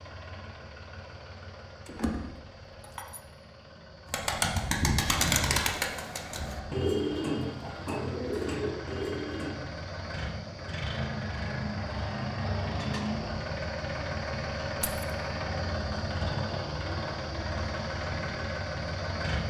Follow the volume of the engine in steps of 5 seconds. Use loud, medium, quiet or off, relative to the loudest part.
quiet, medium, loud, loud.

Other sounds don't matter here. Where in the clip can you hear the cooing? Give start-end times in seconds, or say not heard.
4.1-9.6.